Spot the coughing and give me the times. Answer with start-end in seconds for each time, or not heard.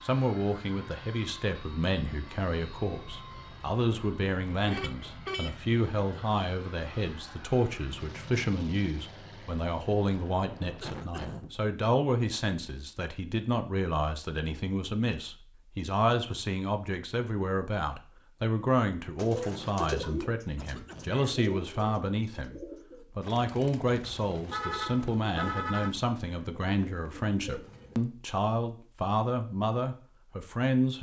10.8-11.5, 19.4-21.2.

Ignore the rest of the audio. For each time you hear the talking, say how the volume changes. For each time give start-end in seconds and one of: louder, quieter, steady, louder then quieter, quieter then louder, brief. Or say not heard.
0.0-30.9 steady.